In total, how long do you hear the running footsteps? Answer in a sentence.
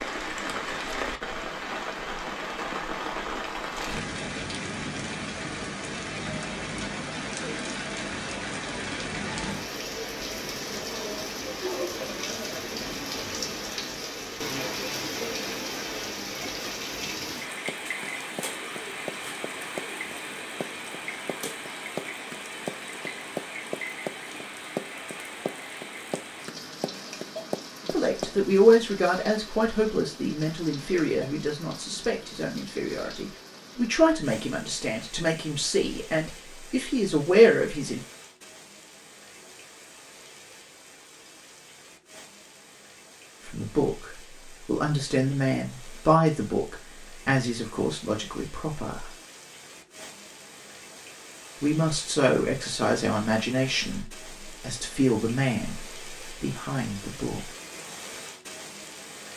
The running footsteps can be heard for 11 seconds in total.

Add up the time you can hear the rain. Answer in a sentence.
You can hear the rain for 59 seconds altogether.